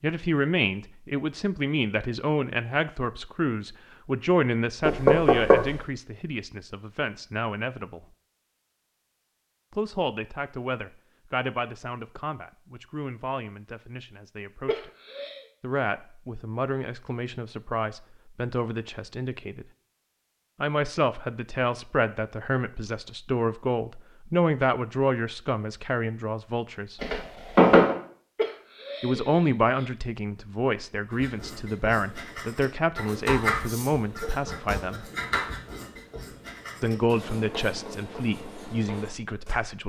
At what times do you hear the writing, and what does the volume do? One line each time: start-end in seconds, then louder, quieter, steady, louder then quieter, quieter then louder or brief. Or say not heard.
31.1-39.5 louder then quieter.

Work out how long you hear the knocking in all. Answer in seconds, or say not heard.
2 s.